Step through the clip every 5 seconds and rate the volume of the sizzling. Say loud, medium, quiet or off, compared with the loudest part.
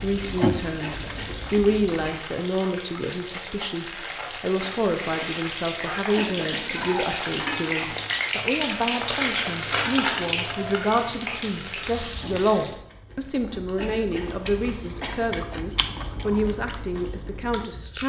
medium, loud, loud, off.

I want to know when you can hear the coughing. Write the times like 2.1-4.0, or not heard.
0.8-1.5, 6.2-7.0, 13.8-15.4.